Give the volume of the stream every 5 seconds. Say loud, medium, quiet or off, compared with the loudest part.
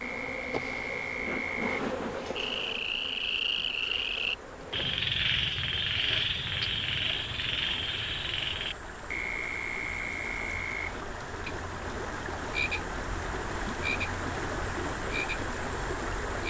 quiet, medium, loud, loud.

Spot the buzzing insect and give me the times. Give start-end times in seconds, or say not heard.
0.0-5.0.